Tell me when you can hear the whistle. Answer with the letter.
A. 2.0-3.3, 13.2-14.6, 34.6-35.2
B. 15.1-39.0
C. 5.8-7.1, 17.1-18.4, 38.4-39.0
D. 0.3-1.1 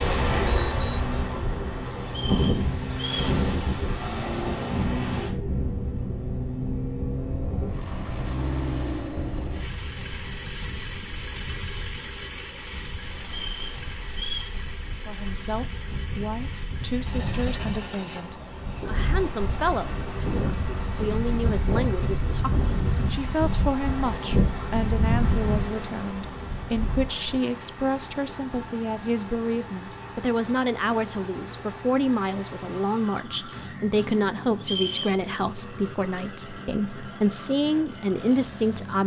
A.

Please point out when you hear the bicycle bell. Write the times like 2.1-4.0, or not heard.
0.3-1.1.